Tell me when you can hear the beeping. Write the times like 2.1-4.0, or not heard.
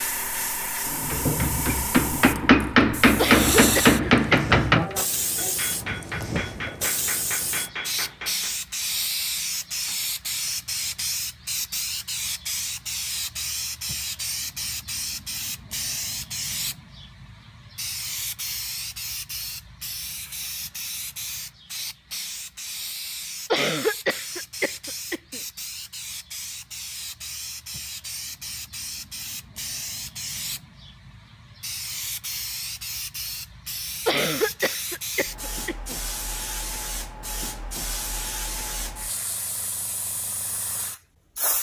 not heard.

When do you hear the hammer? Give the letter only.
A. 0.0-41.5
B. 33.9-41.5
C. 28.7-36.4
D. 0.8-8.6
D.